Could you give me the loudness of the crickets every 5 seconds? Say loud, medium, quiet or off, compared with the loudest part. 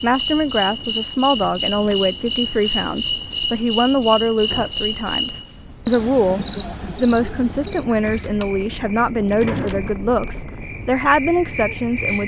loud, medium, medium.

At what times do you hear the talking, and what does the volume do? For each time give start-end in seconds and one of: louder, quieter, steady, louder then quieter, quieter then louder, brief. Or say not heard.
0.0-12.2 steady.